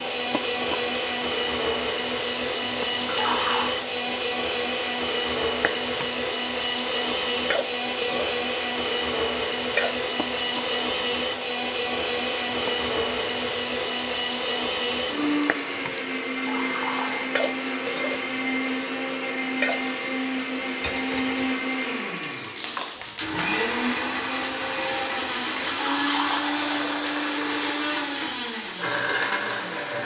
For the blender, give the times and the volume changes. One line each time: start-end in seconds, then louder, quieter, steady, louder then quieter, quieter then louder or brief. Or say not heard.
0.0-30.0 steady.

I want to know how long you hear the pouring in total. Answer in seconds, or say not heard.
4 s.